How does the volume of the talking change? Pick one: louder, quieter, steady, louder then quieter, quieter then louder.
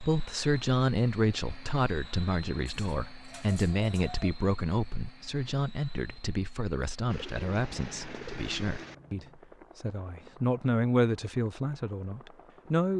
quieter then louder.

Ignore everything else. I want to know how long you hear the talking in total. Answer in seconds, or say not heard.
13 s.